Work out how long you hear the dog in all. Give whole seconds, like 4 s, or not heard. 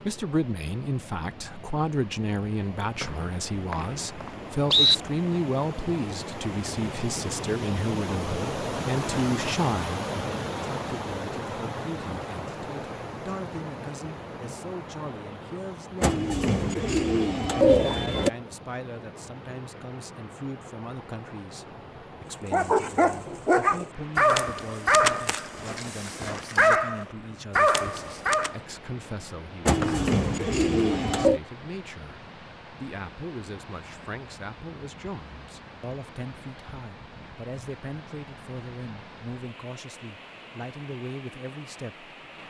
6 s.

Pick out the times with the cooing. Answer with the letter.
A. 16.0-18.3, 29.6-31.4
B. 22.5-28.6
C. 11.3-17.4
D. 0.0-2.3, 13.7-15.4
A.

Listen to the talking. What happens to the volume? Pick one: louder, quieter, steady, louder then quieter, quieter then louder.
quieter.